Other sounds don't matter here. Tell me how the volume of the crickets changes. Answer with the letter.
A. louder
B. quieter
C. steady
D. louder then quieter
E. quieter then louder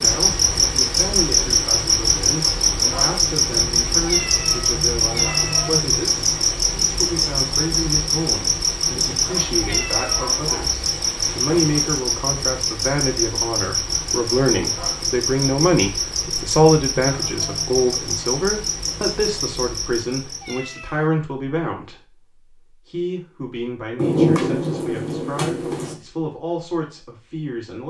B.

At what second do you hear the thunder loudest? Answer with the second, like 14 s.
24 s.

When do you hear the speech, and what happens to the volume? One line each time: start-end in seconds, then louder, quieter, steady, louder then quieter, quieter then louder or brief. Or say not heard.
0.0-27.8 louder then quieter.